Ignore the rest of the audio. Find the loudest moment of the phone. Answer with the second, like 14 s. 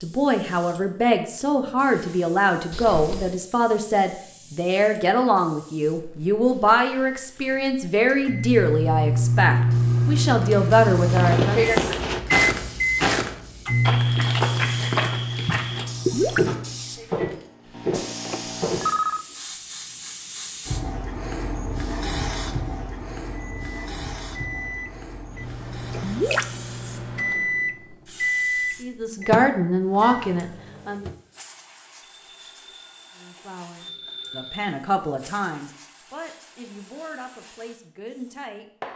19 s.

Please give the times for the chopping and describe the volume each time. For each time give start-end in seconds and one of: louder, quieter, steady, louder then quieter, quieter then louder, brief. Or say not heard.
not heard.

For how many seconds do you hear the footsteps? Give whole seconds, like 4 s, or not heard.
8 s.